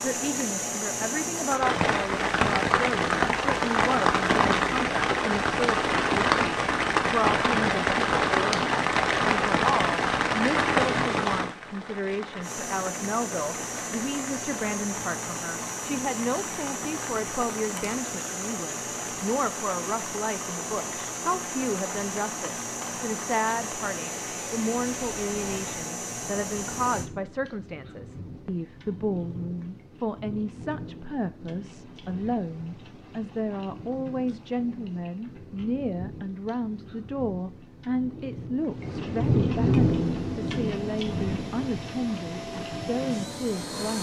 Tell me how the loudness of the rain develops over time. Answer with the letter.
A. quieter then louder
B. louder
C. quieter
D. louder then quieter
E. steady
A.